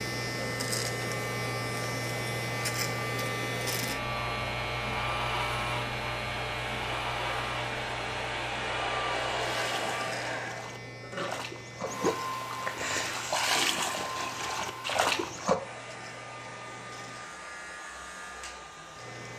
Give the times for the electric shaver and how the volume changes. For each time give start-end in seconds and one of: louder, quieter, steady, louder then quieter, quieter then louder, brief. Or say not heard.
0.0-19.3 quieter.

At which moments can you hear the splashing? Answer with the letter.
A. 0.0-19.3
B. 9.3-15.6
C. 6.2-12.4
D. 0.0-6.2
B.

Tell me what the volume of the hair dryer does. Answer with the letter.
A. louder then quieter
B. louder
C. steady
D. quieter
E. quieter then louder
A.